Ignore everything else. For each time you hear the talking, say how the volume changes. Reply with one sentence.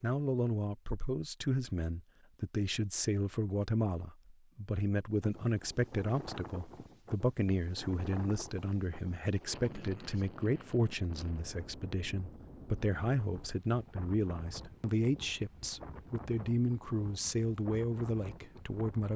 You can hear the talking from 0.0 to 19.1 s, at a steady volume.